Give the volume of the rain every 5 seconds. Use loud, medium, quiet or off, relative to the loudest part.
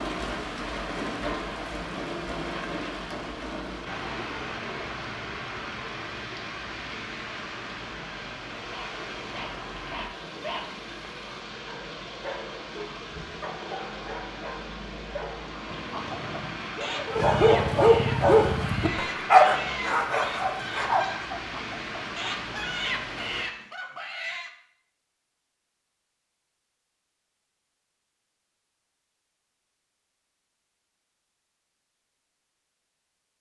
loud, loud, medium, loud, loud, off, off.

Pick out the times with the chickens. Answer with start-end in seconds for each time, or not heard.
15.8-24.6.